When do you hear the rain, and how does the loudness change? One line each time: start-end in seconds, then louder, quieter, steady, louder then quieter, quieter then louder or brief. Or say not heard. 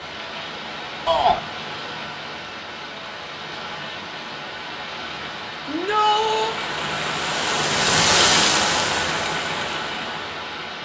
0.0-10.8 louder.